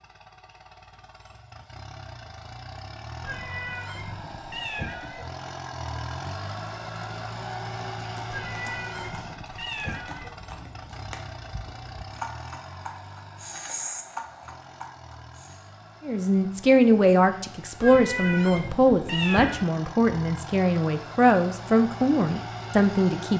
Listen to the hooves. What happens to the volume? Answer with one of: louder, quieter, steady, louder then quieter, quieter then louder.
louder.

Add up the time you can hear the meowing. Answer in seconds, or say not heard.
6 s.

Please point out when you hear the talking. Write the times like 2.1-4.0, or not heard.
16.1-23.3.